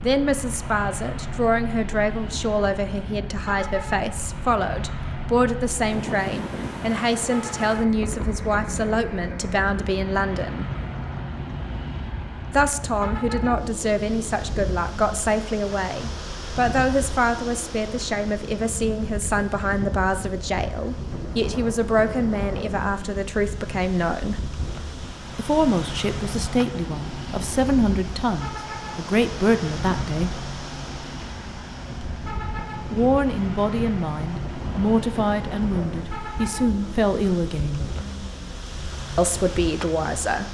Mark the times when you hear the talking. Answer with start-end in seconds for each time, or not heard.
0.0-10.7, 12.5-24.4, 25.4-30.4, 32.9-37.9, 39.1-40.4.